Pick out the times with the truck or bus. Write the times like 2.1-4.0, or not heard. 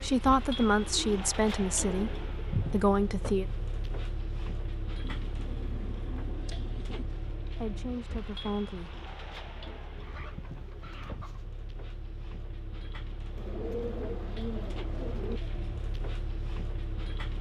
0.0-17.3.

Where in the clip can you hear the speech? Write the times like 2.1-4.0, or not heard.
0.0-3.5, 7.4-8.9.